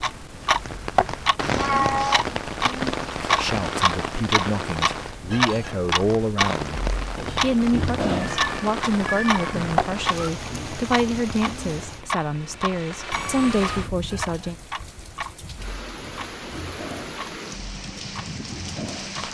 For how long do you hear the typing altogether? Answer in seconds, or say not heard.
not heard.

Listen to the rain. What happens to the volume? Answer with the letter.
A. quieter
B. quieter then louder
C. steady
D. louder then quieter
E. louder
A.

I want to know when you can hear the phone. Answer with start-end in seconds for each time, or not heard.
not heard.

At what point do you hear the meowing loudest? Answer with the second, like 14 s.
2 s.